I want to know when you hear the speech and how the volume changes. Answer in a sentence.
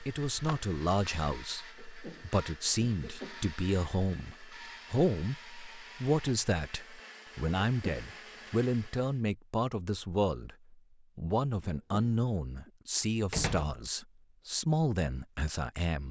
You can hear the speech from 0.0 to 16.0 s, at a steady volume.